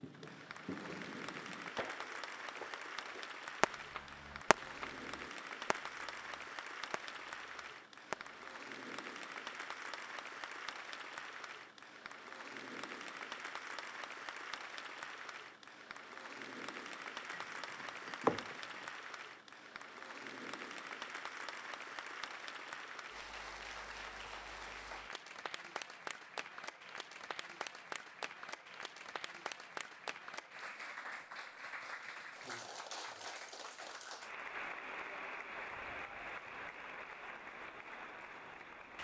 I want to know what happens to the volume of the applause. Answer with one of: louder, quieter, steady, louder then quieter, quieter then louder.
steady.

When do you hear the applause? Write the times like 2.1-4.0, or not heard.
0.0-38.9.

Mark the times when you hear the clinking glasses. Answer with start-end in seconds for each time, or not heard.
17.3-18.9.